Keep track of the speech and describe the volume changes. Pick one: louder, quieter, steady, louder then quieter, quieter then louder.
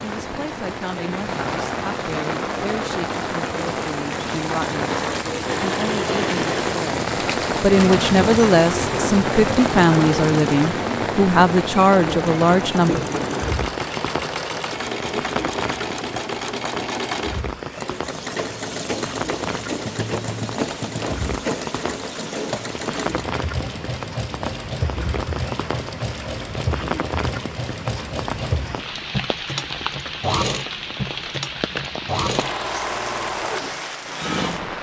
louder.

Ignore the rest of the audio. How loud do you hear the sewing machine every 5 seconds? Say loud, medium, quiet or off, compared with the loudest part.
off, loud, loud, loud, loud, loud, loud.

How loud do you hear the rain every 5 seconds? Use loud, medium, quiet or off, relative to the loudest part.
loud, loud, loud, medium, medium, medium, medium.